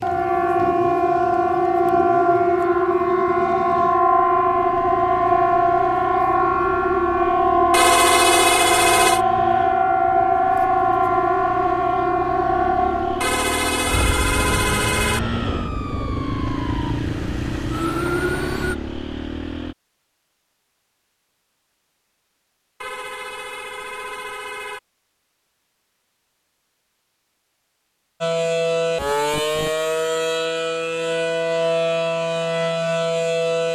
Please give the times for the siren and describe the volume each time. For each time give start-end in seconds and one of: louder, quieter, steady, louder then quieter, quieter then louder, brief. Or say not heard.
0.0-18.8 quieter
28.2-33.7 steady.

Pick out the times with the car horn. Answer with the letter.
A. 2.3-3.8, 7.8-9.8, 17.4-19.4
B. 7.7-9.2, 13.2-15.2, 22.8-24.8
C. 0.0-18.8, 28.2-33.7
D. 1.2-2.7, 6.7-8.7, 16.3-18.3
B.